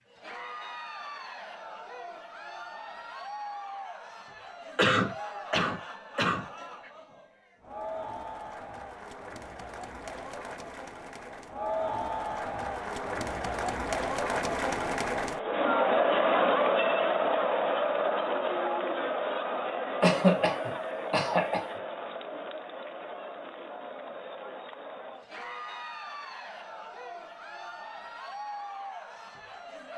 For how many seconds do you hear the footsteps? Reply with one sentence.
The footsteps can't be heard in this clip.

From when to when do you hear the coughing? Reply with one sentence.
The coughing can be heard from 4.8 to 6.5 s and from 20.0 to 21.8 s.